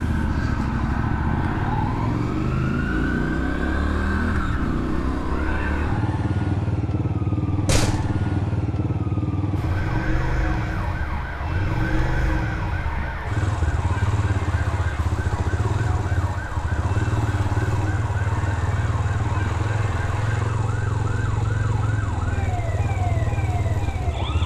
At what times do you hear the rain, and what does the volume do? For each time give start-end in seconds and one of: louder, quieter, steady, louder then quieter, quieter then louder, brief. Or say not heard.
not heard.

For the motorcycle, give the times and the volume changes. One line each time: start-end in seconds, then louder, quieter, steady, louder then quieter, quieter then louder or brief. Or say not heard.
0.0-24.4 steady.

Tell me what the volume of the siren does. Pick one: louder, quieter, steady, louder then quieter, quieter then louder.
steady.